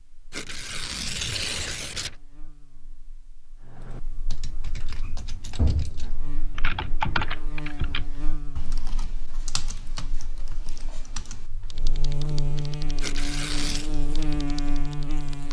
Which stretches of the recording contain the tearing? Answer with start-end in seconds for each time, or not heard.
0.3-2.1, 13.0-13.9.